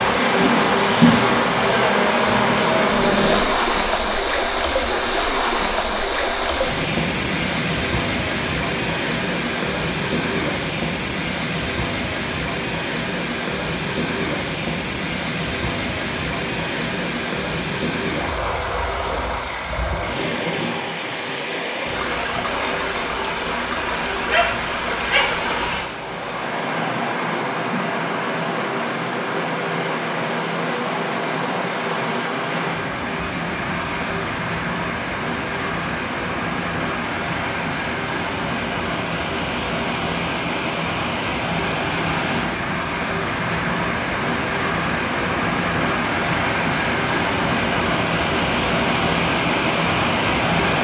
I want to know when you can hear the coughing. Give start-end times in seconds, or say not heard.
not heard.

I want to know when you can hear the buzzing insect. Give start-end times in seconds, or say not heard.
0.0-3.5.